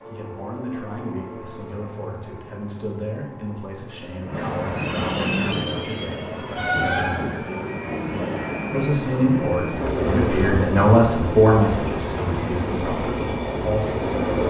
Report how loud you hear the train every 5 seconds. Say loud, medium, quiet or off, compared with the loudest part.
medium, loud, loud.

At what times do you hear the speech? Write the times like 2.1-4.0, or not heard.
0.1-7.3, 8.7-14.2.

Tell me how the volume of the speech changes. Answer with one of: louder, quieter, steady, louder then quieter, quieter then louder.
louder then quieter.